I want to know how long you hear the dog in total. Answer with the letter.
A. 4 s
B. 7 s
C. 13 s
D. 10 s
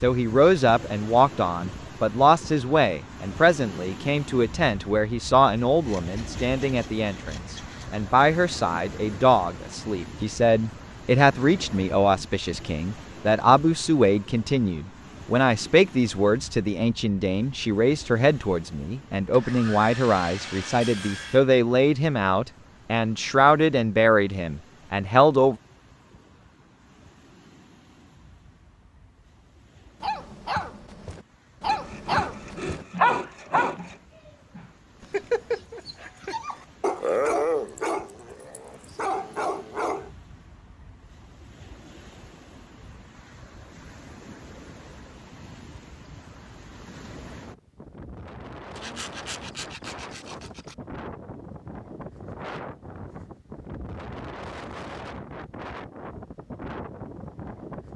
D.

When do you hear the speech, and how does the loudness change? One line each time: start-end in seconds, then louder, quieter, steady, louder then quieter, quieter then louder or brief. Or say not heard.
0.0-25.6 steady.